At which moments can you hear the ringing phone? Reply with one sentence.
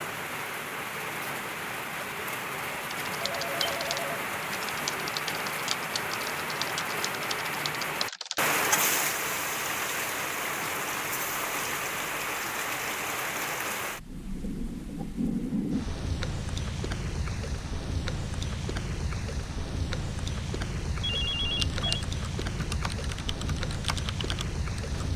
The ringing phone can be heard from 3.2 to 4.2 s and from 21.0 to 22.1 s.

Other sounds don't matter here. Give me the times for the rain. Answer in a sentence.
The rain can be heard from 0.0 to 25.1 s.